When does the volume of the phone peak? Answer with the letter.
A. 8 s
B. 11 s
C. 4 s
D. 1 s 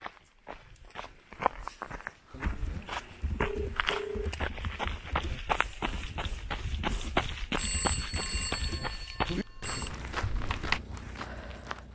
A.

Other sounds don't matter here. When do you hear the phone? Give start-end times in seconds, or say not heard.
3.4-4.3, 7.5-9.9.